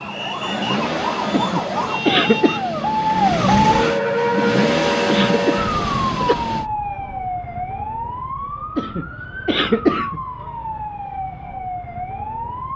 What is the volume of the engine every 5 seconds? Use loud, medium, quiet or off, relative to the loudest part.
loud, loud, off.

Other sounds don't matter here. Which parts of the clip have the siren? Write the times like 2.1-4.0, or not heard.
0.0-12.7.